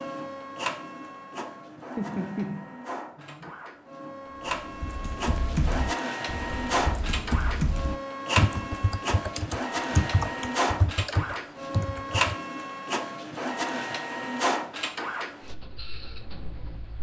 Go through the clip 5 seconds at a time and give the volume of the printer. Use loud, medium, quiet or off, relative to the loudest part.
medium, loud, loud, medium.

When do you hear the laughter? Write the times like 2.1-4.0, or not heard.
1.9-3.5.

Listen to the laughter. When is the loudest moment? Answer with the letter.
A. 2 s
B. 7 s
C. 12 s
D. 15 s
A.